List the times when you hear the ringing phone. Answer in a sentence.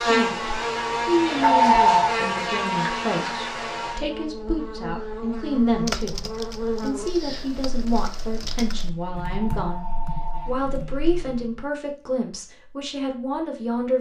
You can hear the ringing phone from 1.4 to 2.1 s and from 9.2 to 11.1 s.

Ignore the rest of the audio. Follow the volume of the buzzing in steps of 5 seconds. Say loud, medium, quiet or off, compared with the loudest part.
loud, medium, quiet.